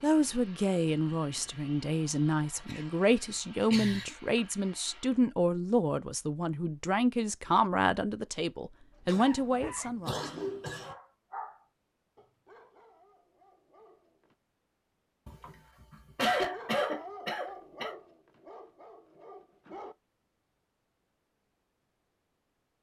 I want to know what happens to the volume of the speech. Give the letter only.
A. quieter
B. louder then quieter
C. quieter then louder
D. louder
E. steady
E.